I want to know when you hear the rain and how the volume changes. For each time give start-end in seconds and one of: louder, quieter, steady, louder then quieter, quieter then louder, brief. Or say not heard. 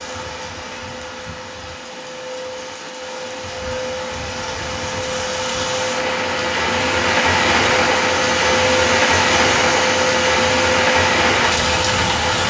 0.0-12.4 louder.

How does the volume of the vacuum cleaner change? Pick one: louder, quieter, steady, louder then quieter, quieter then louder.
louder.